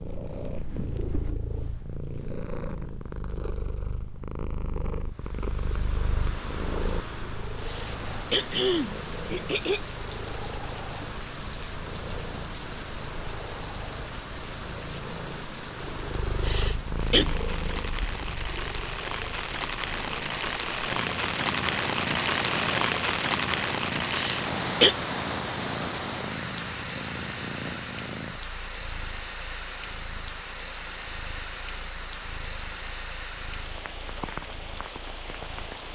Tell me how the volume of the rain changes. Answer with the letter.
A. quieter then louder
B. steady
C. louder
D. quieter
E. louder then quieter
E.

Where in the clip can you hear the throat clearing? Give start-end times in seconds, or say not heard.
7.7-9.8, 16.4-17.2, 24.1-24.9.